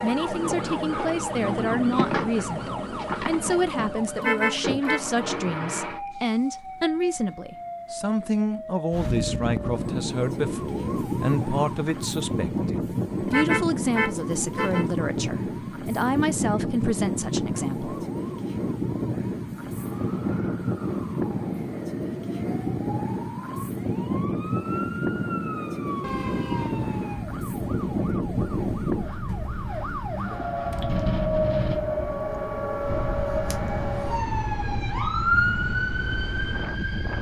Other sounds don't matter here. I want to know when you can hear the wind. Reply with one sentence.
You can hear the wind from 8.9 to 37.1 s.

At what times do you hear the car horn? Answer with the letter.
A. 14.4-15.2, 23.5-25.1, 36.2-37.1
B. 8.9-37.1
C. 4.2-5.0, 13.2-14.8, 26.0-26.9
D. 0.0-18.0
C.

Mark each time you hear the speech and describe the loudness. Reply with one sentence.
You can hear the speech from 0.0 to 18.0 s, at a steady volume.